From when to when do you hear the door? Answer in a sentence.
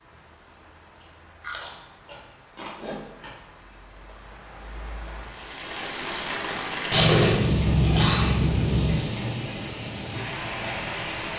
The door can't be heard in this clip.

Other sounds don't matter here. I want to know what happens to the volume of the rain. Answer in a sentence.
The loudness of the rain goes up.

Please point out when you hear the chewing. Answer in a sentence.
The chewing can be heard from 1.0 to 3.4 s and from 6.9 to 8.9 s.